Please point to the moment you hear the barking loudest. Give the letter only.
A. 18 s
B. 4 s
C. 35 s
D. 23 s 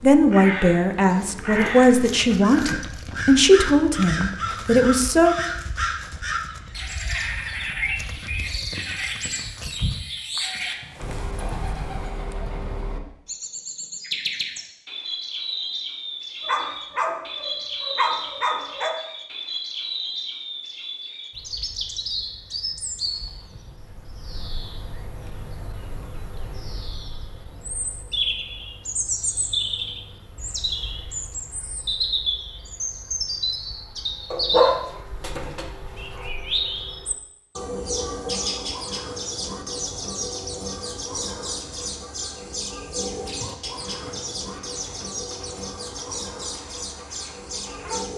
C.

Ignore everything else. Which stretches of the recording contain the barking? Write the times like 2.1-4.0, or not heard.
16.4-18.9, 34.3-36.3.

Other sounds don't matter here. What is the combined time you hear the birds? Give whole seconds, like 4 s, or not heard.
48 s.